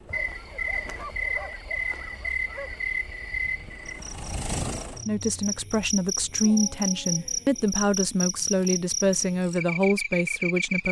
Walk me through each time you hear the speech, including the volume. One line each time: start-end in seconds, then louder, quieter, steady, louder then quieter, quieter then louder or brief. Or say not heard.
5.0-10.8 steady.